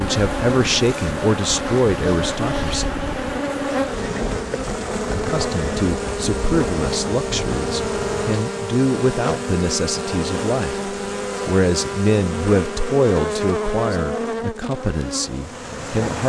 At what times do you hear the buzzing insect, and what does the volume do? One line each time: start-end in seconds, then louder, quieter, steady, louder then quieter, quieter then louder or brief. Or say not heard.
0.0-16.2 steady.